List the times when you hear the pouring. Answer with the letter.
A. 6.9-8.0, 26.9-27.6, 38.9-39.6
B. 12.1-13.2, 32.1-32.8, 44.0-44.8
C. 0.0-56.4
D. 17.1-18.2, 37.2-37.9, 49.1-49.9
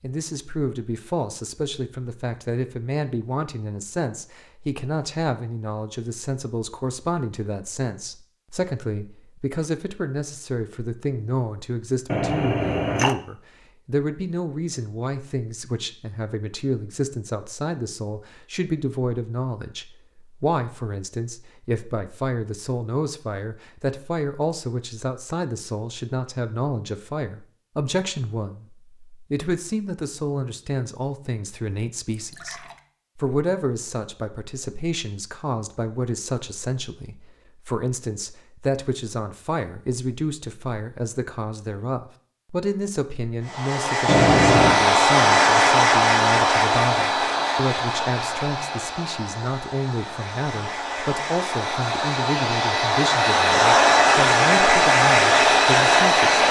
B.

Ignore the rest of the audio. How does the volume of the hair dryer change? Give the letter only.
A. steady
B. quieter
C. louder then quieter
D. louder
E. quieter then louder
E.